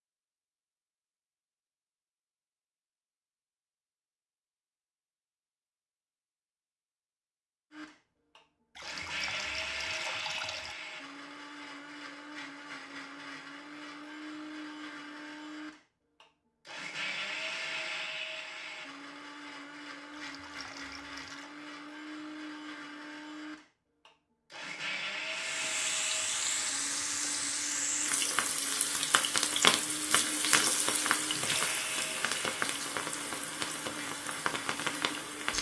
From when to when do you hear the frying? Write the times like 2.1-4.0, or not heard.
25.3-35.5.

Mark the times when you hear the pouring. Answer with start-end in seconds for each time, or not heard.
8.8-10.8, 20.1-21.6.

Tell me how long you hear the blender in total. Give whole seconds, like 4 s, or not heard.
28 s.